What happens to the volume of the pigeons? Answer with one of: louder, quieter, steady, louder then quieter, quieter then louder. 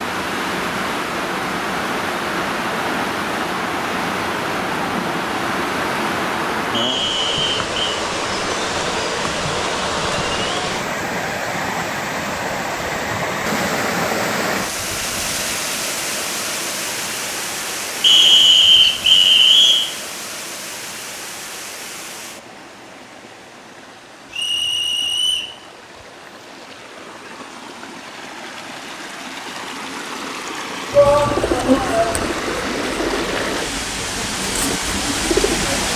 quieter then louder.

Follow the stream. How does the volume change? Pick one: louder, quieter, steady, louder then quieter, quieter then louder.
quieter then louder.